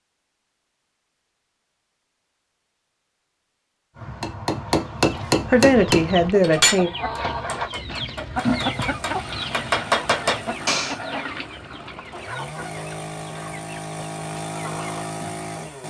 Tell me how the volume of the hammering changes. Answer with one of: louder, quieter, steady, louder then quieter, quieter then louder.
quieter then louder.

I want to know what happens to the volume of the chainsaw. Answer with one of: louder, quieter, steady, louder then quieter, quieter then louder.
louder.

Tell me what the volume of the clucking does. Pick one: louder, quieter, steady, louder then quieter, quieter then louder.
louder then quieter.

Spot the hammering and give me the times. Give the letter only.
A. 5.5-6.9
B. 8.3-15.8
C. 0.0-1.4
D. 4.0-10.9
D.